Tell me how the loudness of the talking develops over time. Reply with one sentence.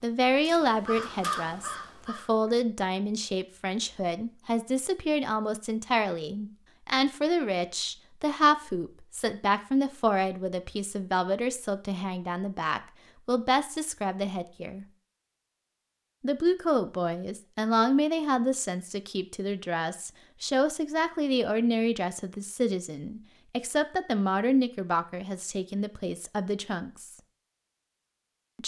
The loudness of the talking stays about the same.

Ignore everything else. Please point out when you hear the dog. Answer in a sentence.
The dog can't be heard in this clip.